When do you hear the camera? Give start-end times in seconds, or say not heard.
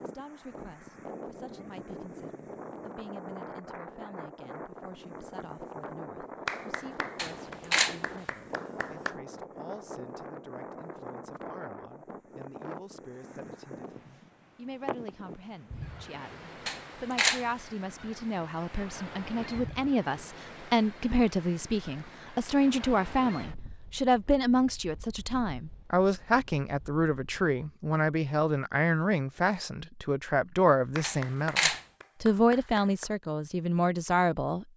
7.2-8.0, 16.6-17.4, 31.0-31.8.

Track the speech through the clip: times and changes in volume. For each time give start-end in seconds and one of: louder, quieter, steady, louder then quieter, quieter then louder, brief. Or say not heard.
0.0-34.6 louder.